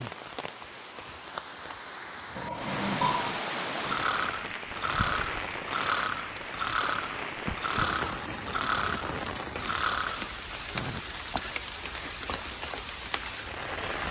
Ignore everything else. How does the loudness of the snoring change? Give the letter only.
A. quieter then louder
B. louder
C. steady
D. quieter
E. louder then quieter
C.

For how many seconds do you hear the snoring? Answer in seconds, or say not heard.
9 s.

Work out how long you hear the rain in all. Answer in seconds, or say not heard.
14 s.